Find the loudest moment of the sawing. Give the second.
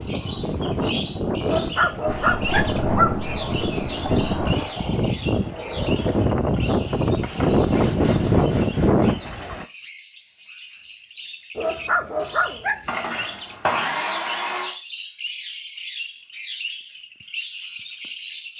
14 s.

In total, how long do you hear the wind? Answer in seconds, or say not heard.
10 s.